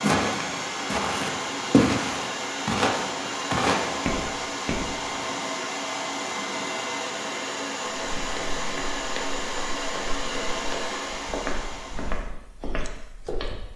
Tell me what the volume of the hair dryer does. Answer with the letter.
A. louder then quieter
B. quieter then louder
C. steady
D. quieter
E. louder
C.